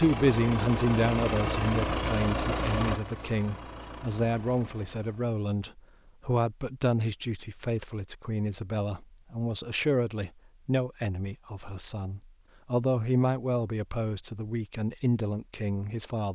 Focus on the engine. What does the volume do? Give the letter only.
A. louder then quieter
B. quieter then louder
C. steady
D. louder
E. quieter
E.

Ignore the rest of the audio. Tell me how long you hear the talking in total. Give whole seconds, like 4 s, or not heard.
16 s.